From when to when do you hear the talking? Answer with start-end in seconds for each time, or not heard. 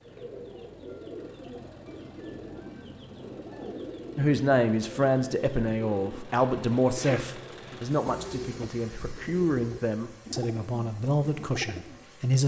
4.2-12.4.